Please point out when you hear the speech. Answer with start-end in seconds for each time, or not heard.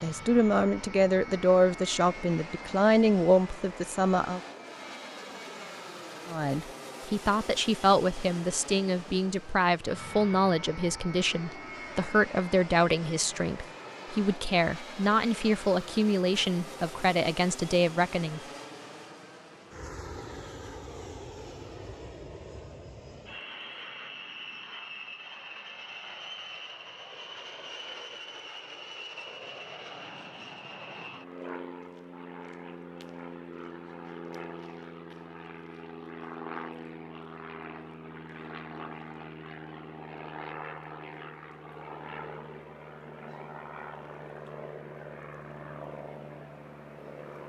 0.0-4.4, 6.2-18.4.